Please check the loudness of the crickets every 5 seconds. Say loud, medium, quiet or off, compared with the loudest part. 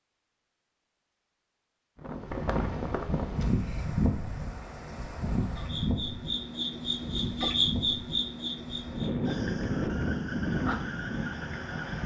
quiet, loud, medium.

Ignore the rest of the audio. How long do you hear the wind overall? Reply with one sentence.
The wind can be heard for 10 seconds in total.